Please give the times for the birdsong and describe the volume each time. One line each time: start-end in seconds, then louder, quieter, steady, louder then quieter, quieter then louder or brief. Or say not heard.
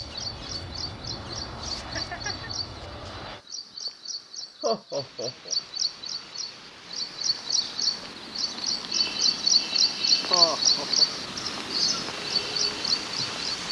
0.0-13.6 louder.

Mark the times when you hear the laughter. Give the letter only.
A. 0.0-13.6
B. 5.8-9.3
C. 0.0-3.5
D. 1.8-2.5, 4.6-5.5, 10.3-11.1
D.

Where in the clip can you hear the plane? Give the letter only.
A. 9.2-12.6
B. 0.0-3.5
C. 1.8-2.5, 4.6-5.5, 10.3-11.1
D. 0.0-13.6
B.